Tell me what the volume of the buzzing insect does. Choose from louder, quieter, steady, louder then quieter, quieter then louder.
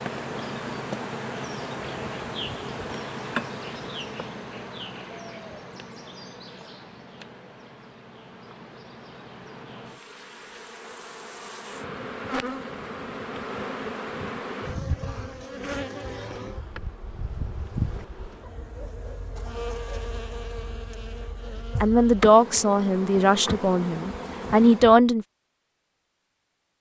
quieter then louder.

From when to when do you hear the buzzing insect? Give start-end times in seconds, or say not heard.
0.0-24.9.